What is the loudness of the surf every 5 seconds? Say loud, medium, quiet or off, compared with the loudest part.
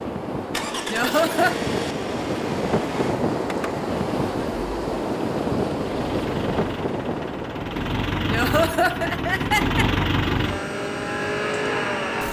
loud, loud, medium.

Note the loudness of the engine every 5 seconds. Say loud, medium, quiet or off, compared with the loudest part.
medium, loud, loud.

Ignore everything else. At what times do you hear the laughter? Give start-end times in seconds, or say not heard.
0.9-1.6, 8.2-9.8.